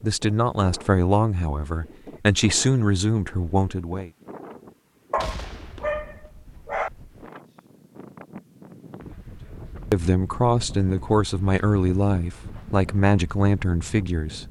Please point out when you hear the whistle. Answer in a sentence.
You can't hear the whistle here.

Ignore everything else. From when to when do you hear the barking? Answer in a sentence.
The barking can be heard from 5.1 to 6.9 s.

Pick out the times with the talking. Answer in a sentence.
You can hear the talking from 0.0 to 4.1 s and from 9.9 to 14.4 s.